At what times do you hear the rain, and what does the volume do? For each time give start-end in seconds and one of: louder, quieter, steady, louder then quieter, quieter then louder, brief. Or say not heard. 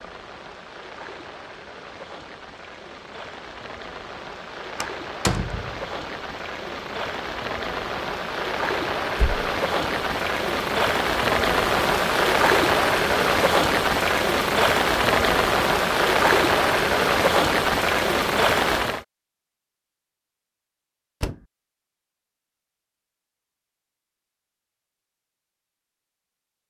0.0-19.1 louder.